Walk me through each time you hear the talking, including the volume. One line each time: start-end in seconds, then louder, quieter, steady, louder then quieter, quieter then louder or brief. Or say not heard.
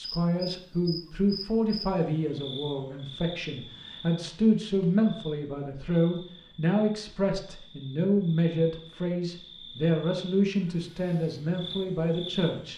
0.0-12.7 steady.